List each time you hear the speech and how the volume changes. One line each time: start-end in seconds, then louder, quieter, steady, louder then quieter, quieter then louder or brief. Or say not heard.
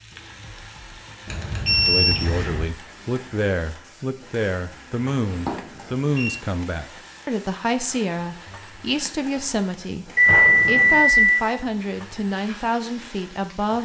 1.9-13.8 steady.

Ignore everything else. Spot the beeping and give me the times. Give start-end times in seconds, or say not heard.
1.2-2.6, 5.3-6.3, 10.2-11.4.